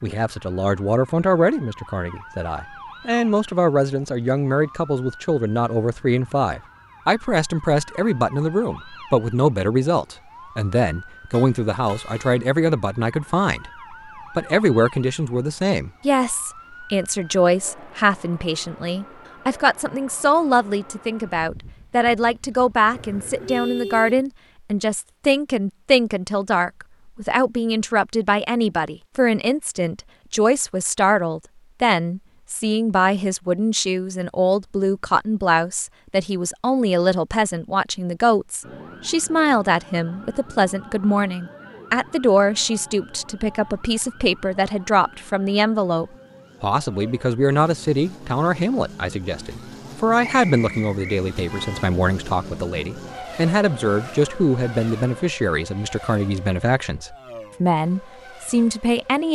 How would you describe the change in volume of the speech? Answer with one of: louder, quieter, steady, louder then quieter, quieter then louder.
steady.